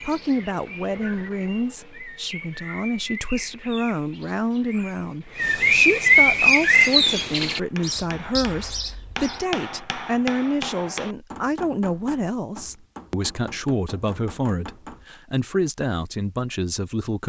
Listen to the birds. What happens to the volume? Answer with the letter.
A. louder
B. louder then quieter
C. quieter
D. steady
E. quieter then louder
B.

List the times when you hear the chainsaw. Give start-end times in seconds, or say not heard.
not heard.